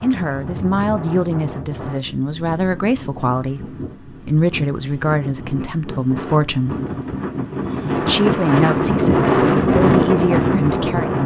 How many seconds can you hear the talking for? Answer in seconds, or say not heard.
10 s.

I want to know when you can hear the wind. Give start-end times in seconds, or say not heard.
0.0-11.2.